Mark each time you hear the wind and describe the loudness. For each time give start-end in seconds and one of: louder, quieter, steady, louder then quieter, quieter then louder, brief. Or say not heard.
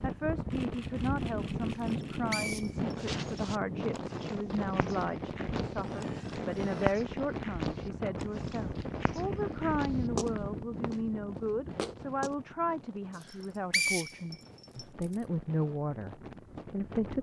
0.0-17.1 quieter.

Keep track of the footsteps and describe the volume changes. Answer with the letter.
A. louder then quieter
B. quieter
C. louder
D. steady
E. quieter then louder
A.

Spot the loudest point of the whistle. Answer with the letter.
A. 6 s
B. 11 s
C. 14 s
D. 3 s
C.